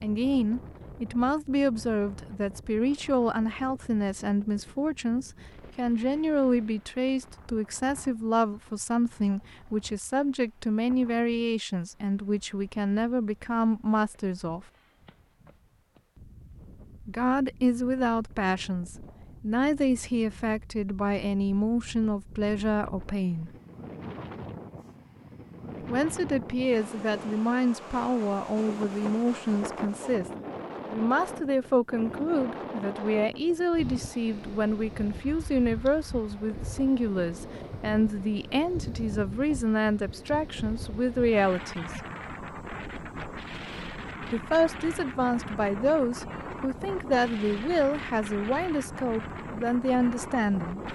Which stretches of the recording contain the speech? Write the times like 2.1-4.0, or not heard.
0.0-14.7, 17.0-23.5, 25.8-30.2, 30.9-41.9, 44.3-50.8.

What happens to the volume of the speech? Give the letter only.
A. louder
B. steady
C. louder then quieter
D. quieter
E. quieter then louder
B.